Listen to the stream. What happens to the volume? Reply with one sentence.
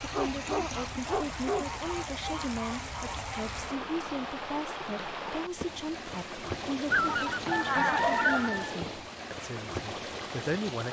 The volume of the stream stays about the same.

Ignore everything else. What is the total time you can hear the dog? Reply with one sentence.
The dog can be heard for 3 seconds in total.